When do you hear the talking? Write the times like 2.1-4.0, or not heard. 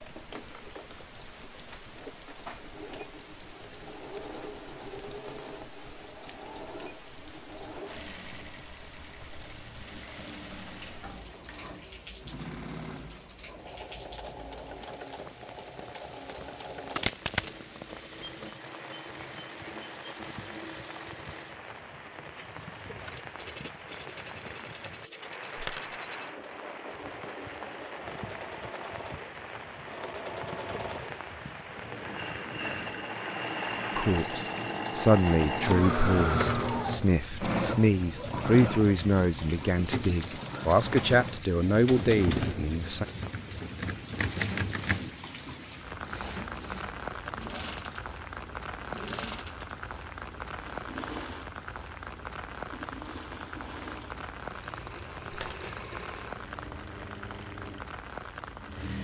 34.0-43.0.